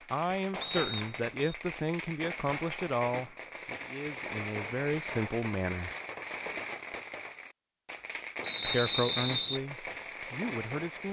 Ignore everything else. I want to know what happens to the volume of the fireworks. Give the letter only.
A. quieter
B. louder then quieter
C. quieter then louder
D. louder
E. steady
E.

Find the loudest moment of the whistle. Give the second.
9 s.